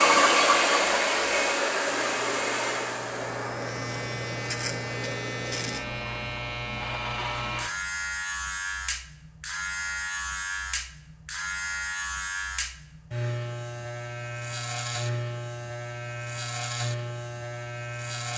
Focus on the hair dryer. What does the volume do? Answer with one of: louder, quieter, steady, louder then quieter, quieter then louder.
quieter.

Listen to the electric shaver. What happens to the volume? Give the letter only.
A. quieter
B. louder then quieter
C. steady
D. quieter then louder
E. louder
C.